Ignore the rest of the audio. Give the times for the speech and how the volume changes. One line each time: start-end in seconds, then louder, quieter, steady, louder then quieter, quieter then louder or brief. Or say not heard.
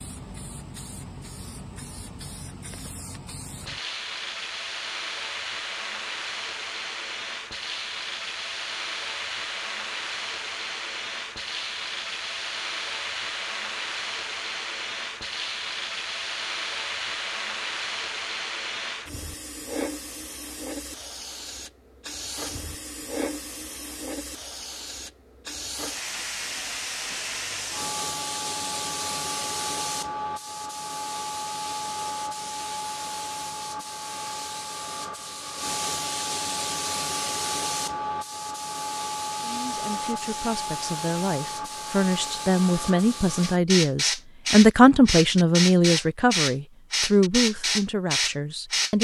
39.4-48.9 louder then quieter.